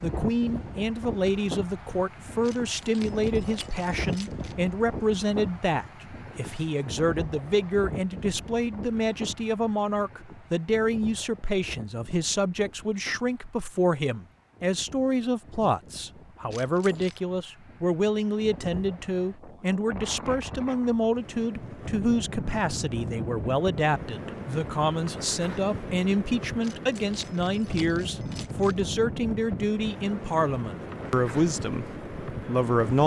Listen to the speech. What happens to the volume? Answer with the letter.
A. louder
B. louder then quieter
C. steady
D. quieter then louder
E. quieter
C.